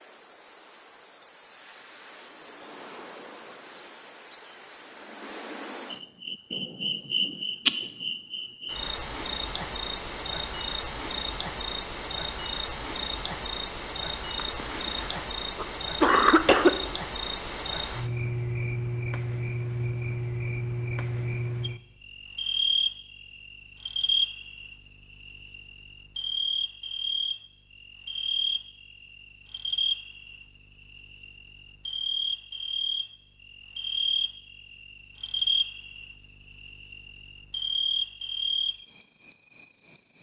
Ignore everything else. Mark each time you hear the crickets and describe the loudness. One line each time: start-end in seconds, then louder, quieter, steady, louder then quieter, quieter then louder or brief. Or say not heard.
0.0-40.1 steady.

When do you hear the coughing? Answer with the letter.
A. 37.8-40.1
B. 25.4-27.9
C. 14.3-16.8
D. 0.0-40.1
C.